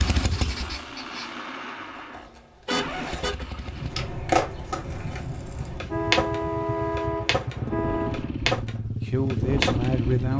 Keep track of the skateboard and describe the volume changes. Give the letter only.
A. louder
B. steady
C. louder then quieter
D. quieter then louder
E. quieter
A.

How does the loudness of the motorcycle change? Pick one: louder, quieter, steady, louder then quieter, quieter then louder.
quieter then louder.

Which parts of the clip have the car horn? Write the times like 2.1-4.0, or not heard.
2.6-3.5, 5.8-8.3.